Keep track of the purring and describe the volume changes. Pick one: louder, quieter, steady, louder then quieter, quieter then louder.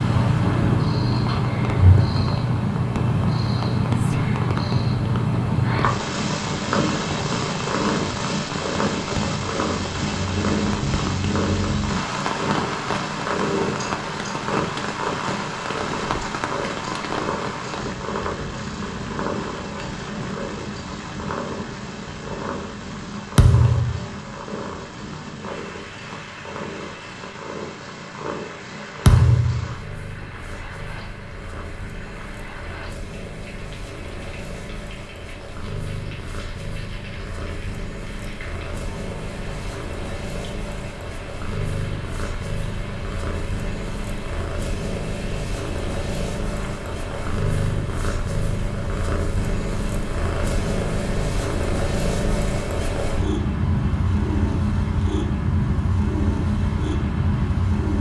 quieter then louder.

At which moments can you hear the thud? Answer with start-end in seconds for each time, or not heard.
23.4-24.1, 29.1-29.8.